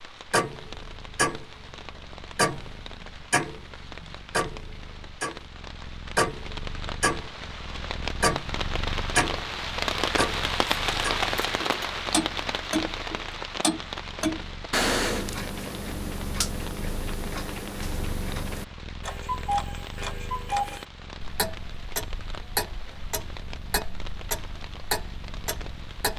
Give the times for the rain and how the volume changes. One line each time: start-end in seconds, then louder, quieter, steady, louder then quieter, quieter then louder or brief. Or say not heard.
0.0-26.1 louder then quieter.